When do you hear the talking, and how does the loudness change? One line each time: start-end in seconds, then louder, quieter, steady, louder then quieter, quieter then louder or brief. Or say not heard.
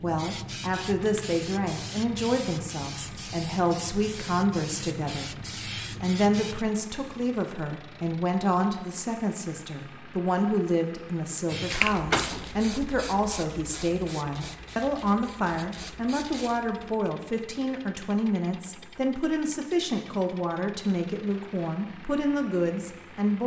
0.0-23.4 steady.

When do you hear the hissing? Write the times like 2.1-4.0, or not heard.
0.0-6.7, 11.4-16.9.